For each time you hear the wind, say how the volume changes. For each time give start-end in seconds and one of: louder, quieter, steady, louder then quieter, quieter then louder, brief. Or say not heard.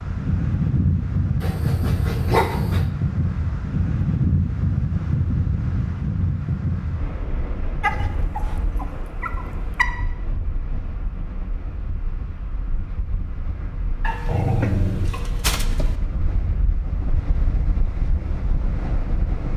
0.0-19.5 quieter then louder.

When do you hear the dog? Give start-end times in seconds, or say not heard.
1.4-2.9, 7.8-9.8, 14.0-15.9.